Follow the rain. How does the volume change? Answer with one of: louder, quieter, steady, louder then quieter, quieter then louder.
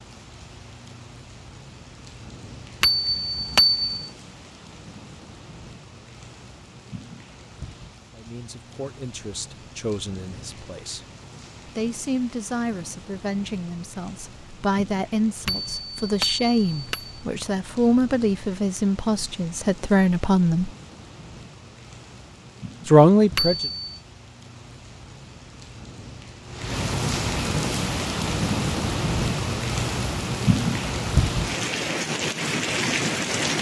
louder.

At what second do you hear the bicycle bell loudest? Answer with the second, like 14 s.
4 s.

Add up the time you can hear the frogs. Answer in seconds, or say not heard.
not heard.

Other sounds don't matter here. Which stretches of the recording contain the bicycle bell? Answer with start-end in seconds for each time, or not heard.
2.8-4.0, 15.4-17.1, 23.4-23.9.